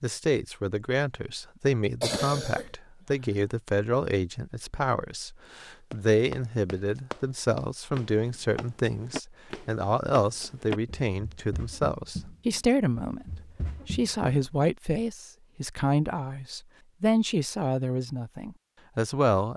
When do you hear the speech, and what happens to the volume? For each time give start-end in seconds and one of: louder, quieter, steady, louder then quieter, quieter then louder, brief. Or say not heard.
0.0-19.5 steady.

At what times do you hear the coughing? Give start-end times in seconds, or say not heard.
2.0-3.3.